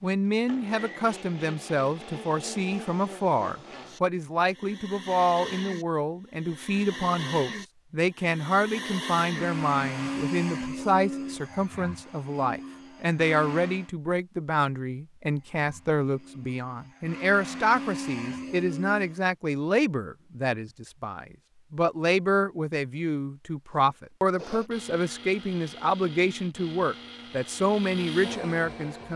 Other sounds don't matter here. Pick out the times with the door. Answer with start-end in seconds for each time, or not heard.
not heard.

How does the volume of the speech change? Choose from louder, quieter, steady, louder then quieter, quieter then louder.
steady.